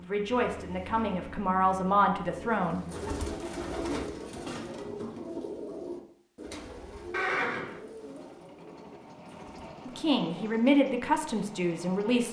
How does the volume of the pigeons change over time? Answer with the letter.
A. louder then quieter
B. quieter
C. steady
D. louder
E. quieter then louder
B.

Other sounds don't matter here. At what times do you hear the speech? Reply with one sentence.
You can hear the speech from 0.0 to 2.8 s and from 9.8 to 12.2 s.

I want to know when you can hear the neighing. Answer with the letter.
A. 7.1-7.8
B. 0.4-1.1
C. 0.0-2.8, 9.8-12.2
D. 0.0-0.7
A.